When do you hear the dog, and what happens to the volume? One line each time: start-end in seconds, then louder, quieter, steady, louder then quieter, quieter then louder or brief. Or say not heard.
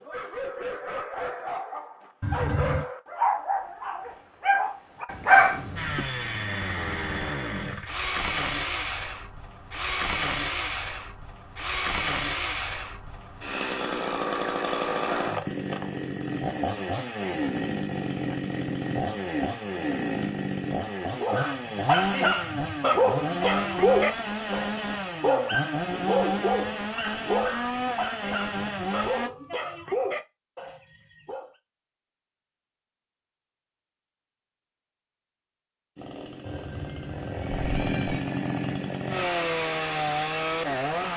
0.0-6.0 louder
21.2-31.5 quieter.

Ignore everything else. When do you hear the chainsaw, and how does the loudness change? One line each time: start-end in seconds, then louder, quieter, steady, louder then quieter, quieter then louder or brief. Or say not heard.
5.8-29.3 steady
36.0-41.1 louder.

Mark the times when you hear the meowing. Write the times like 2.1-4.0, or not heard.
2.2-2.9, 36.5-38.2.